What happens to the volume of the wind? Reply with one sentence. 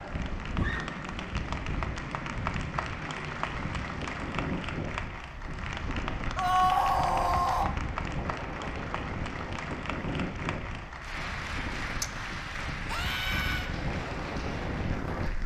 The volume of the wind stays about the same.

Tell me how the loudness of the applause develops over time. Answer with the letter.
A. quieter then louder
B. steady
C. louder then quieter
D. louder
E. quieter
B.